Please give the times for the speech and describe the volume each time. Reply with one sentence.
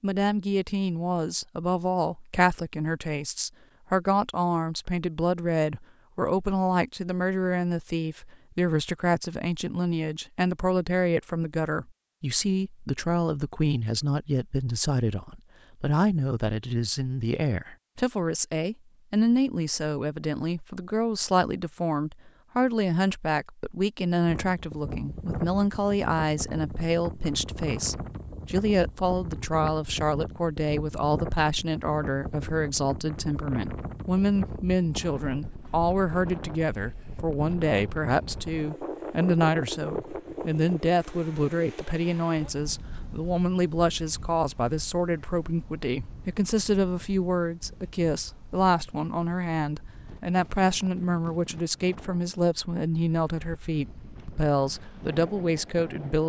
The speech can be heard from 0.0 to 56.2 s, at a steady volume.